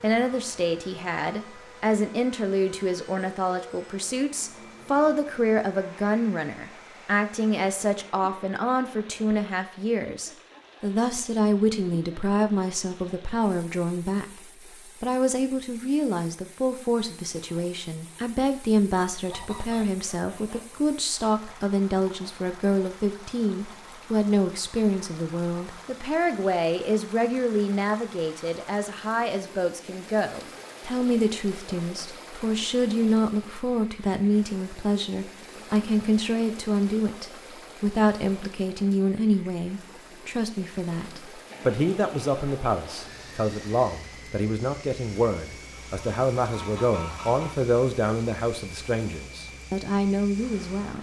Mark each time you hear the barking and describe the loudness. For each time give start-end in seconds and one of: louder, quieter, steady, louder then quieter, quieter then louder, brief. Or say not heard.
not heard.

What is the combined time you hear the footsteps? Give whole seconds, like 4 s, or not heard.
not heard.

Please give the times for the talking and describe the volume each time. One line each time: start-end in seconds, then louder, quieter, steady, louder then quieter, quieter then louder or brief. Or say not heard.
0.0-14.4 steady
15.0-50.9 steady.